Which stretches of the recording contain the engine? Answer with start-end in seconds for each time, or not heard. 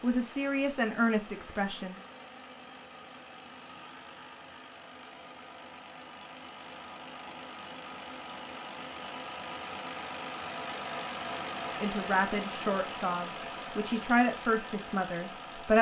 0.0-15.7.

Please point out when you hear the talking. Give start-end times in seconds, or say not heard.
0.0-2.0, 11.8-15.7.